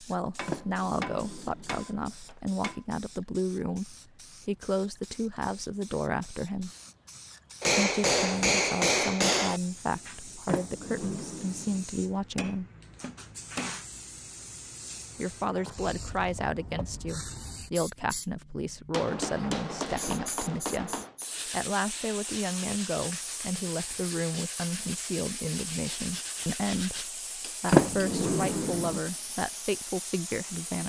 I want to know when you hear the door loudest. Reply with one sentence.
The loudest moment of the door is at 28 seconds.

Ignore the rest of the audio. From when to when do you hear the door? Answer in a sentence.
You can hear the door from 0.5 to 1.9 s, from 10.4 to 11.8 s and from 27.7 to 29.0 s.